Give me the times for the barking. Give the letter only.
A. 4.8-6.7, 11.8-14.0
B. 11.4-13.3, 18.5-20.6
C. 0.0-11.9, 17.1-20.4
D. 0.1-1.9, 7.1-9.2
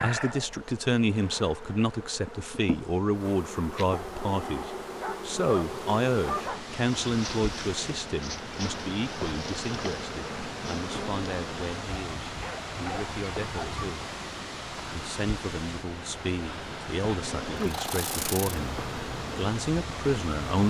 A.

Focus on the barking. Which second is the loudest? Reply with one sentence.
The volume of the barking peaks at 6 seconds.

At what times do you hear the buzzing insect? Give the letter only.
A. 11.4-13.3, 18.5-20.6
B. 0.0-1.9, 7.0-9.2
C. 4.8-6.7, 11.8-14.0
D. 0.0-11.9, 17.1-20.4
D.